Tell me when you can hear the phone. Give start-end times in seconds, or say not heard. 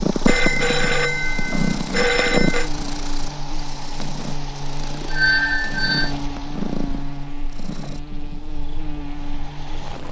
0.2-2.7, 5.0-6.2.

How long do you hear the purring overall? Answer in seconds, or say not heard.
10 s.